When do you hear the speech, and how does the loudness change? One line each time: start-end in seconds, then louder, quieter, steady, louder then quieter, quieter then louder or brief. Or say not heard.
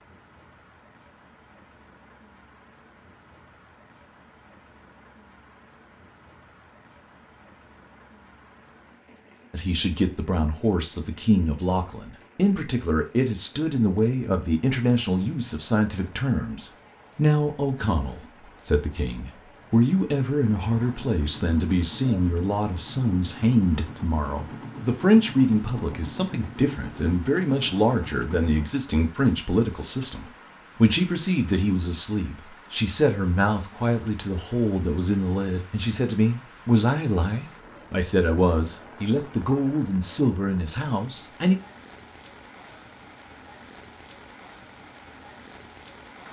9.5-41.5 steady.